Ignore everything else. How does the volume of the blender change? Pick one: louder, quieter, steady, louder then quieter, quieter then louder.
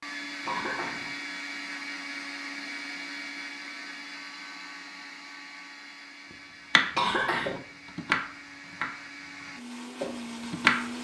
quieter then louder.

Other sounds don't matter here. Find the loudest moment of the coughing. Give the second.
7 s.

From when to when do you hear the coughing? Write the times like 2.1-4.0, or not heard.
0.5-1.1, 7.0-7.6.